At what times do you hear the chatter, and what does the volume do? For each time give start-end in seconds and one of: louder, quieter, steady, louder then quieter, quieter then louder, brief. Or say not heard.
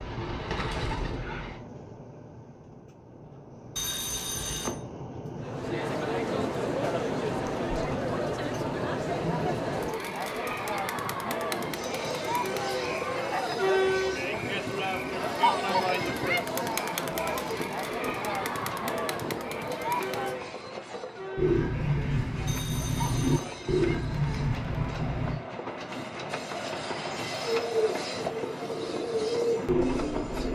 5.4-30.4 quieter.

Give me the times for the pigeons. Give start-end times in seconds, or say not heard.
0.0-1.6, 21.4-25.4, 27.4-30.4.